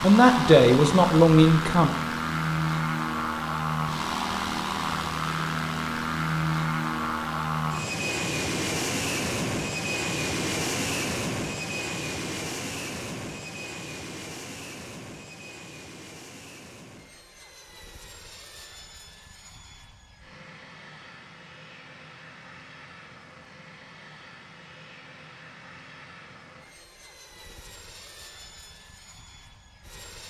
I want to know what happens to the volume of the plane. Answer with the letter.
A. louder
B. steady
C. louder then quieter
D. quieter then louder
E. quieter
E.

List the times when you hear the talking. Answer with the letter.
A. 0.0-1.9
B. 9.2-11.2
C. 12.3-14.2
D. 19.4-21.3
A.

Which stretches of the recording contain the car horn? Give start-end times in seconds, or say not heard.
not heard.